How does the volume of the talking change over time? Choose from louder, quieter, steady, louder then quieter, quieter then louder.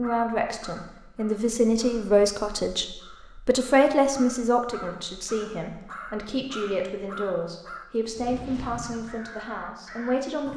quieter.